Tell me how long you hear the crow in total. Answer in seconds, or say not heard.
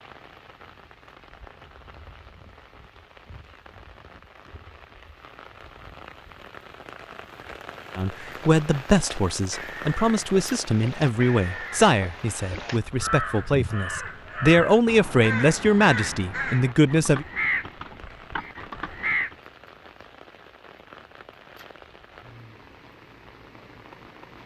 11 s.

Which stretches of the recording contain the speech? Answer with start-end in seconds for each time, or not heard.
8.0-17.2.